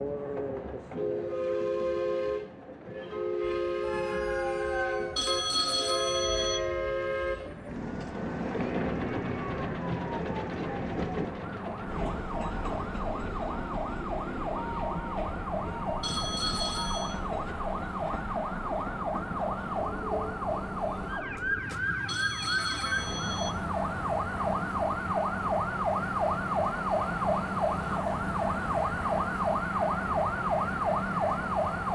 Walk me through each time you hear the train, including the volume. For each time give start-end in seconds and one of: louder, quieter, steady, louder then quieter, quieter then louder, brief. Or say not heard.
0.0-31.9 quieter.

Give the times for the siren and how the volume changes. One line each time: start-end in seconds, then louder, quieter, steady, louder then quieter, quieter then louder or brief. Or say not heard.
3.4-31.9 louder.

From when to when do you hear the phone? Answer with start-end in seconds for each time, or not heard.
5.2-6.6, 16.0-17.2, 22.1-23.6.